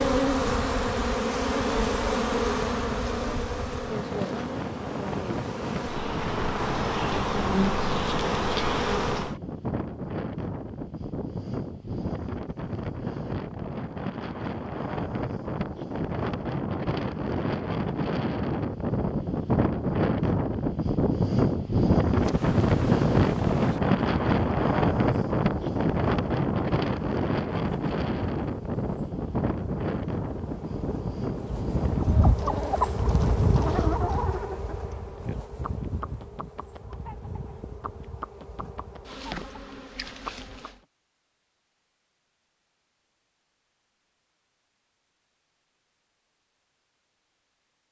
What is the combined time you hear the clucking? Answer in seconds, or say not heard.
9 s.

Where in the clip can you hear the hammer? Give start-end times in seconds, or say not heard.
not heard.